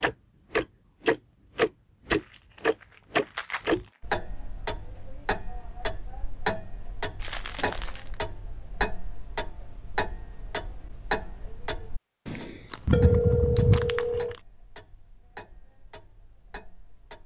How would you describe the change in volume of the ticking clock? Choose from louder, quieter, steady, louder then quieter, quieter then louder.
quieter.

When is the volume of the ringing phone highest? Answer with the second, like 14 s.
13 s.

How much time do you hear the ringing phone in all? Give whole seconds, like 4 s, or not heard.
2 s.